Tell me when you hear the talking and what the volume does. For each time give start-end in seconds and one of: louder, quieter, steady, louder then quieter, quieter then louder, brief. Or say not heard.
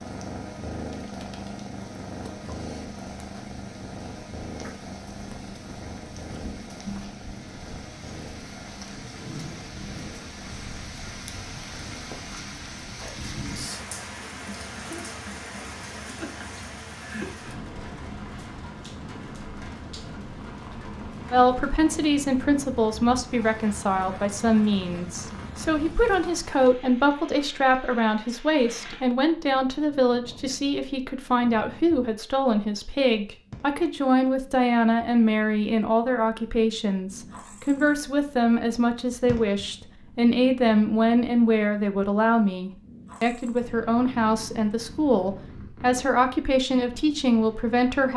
21.3-48.1 steady.